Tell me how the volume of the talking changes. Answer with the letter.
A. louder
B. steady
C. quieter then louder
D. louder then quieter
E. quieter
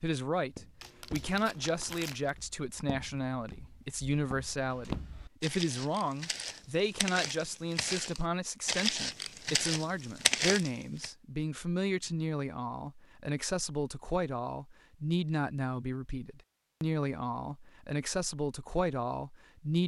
B.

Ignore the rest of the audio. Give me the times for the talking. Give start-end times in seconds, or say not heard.
0.0-19.8.